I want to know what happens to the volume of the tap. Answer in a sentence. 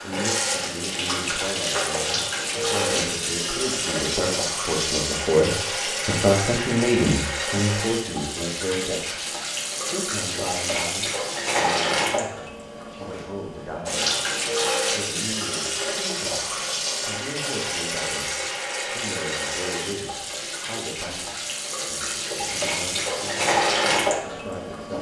The loudness of the tap stays about the same.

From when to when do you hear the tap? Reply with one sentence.
You can hear the tap from 0.0 to 24.9 s.